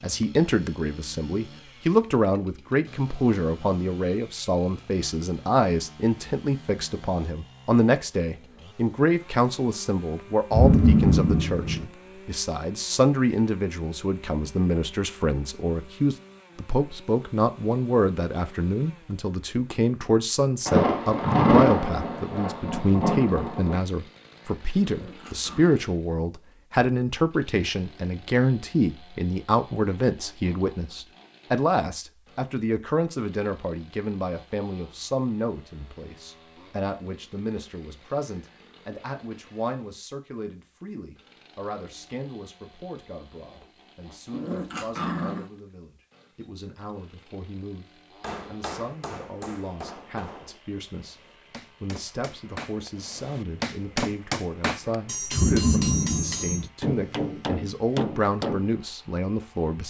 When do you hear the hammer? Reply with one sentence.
You can hear the hammer from 48.2 to 58.7 s.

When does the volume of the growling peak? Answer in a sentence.
The loudest moment of the growling is at 45 seconds.